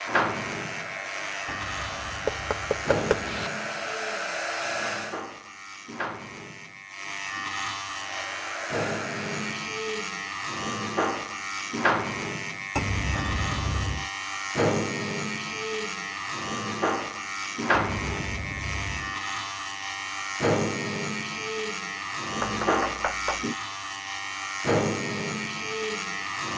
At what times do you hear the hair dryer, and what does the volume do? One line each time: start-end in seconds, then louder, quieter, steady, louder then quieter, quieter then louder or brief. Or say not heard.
0.0-5.2 louder
7.8-9.7 brief.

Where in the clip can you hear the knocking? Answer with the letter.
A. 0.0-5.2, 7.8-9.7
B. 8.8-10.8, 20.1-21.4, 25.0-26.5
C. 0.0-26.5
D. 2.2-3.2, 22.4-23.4
D.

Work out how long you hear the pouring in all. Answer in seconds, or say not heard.
5 s.